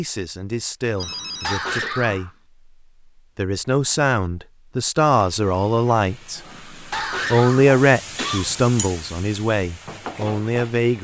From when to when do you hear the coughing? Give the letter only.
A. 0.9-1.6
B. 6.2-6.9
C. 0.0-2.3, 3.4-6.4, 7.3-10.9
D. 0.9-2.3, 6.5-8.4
D.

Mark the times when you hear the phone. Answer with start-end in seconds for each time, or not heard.
0.9-1.6.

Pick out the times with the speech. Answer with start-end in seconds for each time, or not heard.
0.0-2.3, 3.4-6.4, 7.3-10.9.